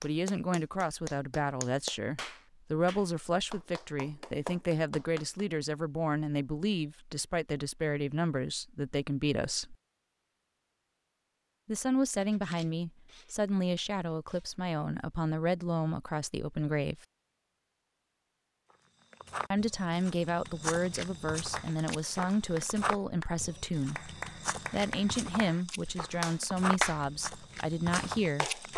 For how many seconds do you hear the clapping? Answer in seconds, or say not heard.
13 s.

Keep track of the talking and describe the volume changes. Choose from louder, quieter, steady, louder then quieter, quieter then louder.
steady.